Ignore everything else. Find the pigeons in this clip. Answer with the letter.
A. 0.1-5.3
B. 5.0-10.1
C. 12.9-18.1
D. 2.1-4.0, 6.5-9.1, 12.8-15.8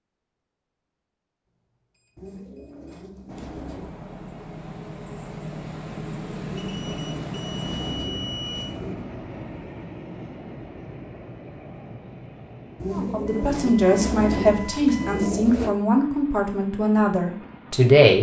D.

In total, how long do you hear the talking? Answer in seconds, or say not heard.
5 s.